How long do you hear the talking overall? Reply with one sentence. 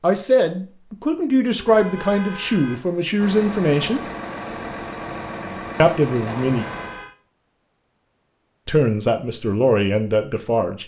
The talking can be heard for 7 seconds in total.